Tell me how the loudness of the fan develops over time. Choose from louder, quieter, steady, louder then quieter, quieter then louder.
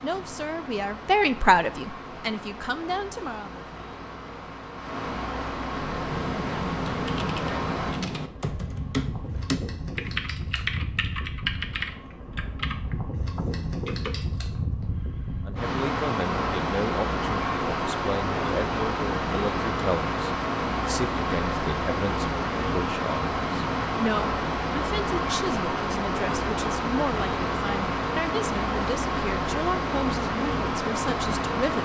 louder.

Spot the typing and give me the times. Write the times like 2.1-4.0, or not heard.
5.7-14.2.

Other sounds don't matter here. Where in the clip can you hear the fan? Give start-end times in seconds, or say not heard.
0.0-31.7.